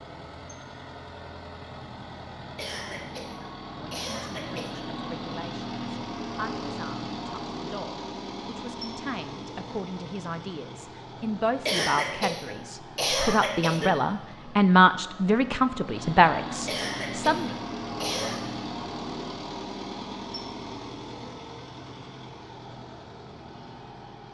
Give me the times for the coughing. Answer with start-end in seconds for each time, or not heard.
2.5-4.8, 11.7-13.9, 16.6-18.5.